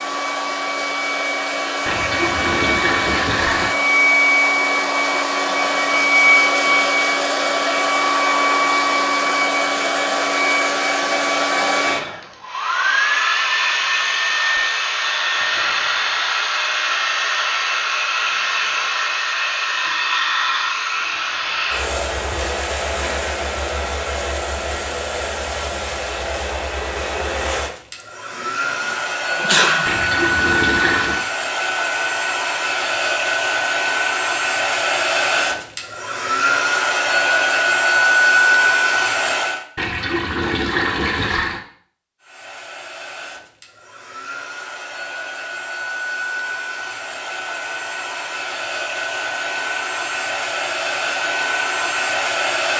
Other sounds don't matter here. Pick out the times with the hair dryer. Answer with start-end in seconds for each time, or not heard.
0.0-39.6, 42.2-52.7.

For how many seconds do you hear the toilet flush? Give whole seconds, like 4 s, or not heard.
5 s.